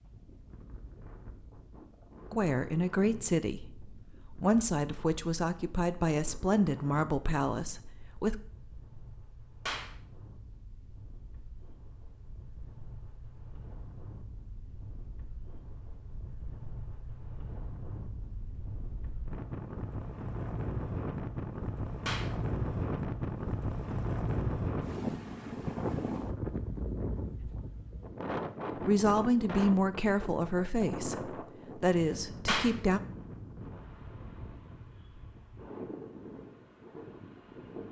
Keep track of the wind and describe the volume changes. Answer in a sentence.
The volume of the wind goes up, then down.